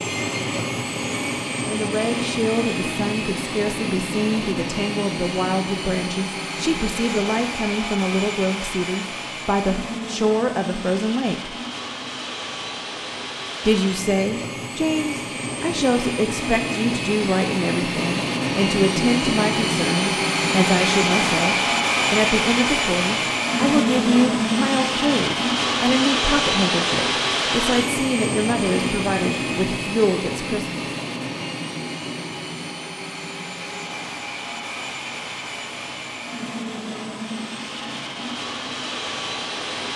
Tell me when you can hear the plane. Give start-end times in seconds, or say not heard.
0.0-39.9.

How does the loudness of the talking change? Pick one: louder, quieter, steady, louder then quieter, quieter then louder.
steady.